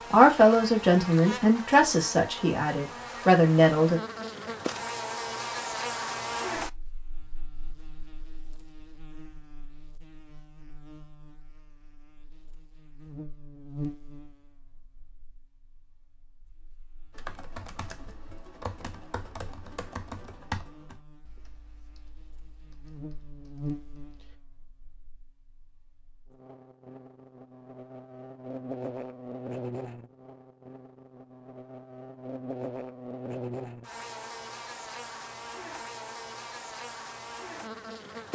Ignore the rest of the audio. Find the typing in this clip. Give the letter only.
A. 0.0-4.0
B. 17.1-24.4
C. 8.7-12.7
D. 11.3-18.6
B.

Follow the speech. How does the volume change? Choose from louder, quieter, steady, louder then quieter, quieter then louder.
quieter then louder.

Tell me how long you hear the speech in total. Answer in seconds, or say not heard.
4 s.